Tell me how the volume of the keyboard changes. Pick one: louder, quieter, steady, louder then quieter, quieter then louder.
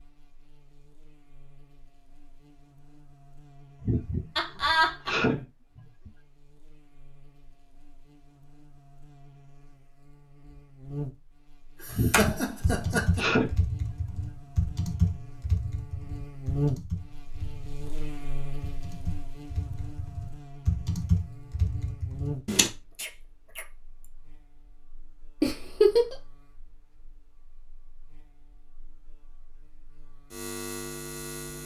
quieter then louder.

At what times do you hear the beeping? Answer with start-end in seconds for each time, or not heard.
not heard.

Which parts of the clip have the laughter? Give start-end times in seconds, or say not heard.
4.3-5.2, 11.8-13.2, 25.4-26.1.